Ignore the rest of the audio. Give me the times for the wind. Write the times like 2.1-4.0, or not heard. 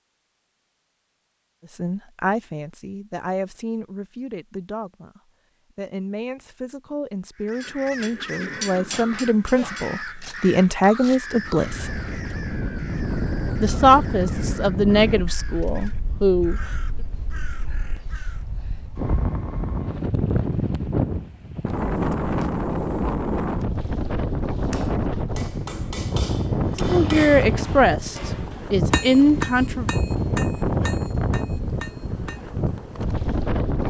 11.2-33.8.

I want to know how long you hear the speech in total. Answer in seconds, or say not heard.
16 s.